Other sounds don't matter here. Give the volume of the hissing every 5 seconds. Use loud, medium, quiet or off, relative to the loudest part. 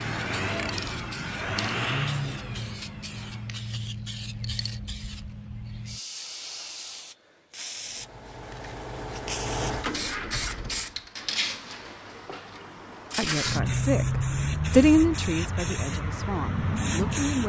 medium, medium, loud, loud.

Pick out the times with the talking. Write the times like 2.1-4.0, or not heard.
13.2-17.4.